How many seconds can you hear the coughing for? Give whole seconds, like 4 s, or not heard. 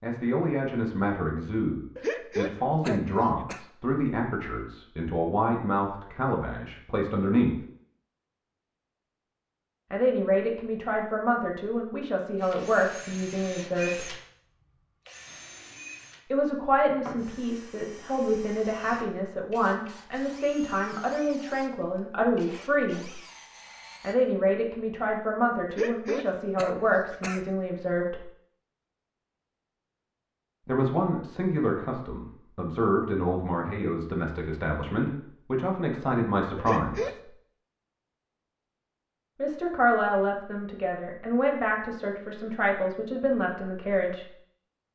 4 s.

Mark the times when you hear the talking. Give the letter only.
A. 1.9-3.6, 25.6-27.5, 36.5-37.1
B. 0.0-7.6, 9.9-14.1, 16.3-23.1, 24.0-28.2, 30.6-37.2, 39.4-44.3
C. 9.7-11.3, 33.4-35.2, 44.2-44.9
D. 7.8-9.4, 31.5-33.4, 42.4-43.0
B.